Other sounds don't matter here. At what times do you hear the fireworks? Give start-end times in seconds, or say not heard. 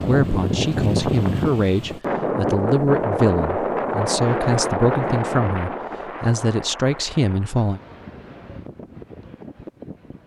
not heard.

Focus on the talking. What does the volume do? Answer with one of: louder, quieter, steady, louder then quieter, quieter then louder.
steady.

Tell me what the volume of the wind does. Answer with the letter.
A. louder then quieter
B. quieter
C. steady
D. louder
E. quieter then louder
B.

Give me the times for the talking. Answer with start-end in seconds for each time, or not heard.
0.1-7.8.